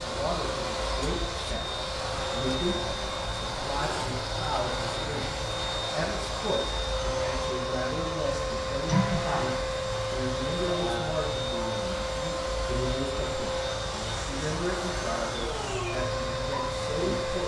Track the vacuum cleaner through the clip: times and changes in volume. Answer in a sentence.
The vacuum cleaner can be heard from 0.0 to 17.4 s, at a steady volume.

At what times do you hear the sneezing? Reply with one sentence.
The sneezing can be heard from 8.8 to 9.6 s.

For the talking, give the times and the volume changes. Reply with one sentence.
The talking can be heard from 0.0 to 17.4 s, at a steady volume.